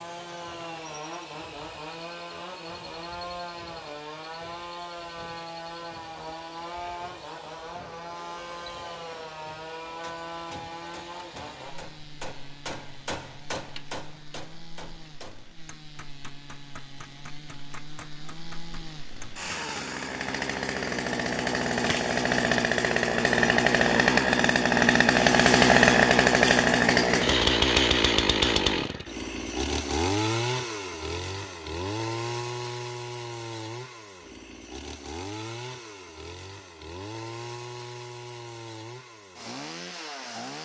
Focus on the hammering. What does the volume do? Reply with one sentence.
The volume of the hammering goes up, then down.